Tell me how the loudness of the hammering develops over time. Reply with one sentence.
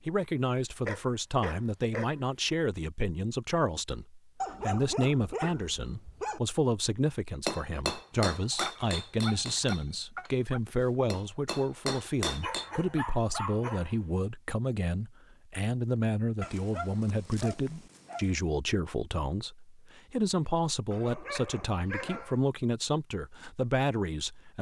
The loudness of the hammering goes down, then up.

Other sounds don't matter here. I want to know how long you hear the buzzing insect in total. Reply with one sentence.
The buzzing insect can't be heard in this clip.